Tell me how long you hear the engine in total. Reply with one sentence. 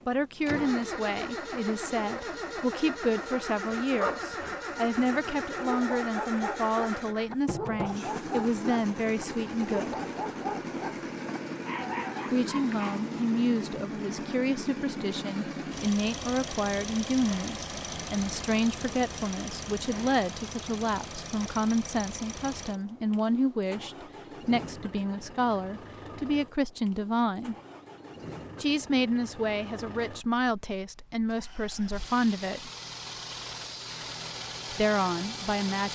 You can hear the engine for 36 seconds altogether.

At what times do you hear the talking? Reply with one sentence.
You can hear the talking from 0.1 to 9.9 s, from 12.3 to 27.6 s, from 28.6 to 32.7 s and from 34.7 to 35.9 s.